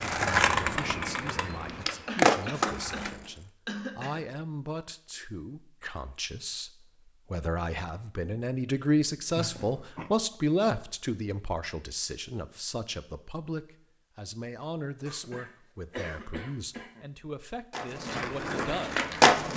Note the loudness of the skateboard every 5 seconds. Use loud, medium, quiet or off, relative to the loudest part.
loud, off, off, loud.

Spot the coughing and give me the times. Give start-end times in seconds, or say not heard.
2.0-4.2, 9.3-10.1, 15.1-17.1.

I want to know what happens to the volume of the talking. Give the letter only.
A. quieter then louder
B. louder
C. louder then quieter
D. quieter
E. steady
C.